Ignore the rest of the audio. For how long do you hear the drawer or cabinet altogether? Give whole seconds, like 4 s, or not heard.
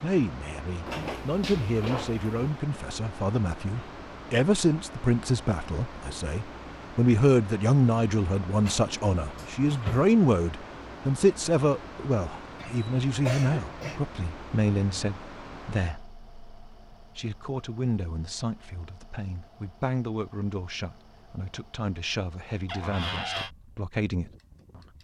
4 s.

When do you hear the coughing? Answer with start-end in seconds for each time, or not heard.
12.6-14.0.